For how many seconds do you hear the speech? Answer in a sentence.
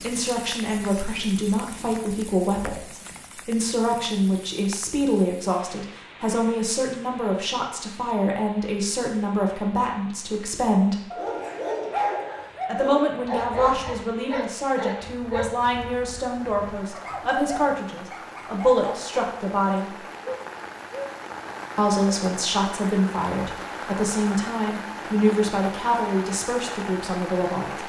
The speech can be heard for 24 seconds in total.